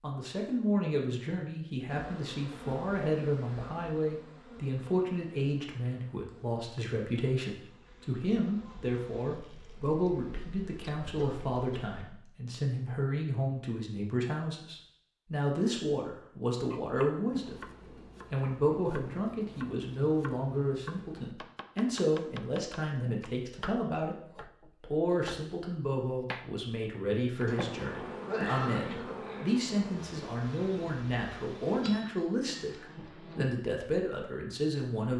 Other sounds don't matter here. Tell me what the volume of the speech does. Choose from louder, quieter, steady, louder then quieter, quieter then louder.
steady.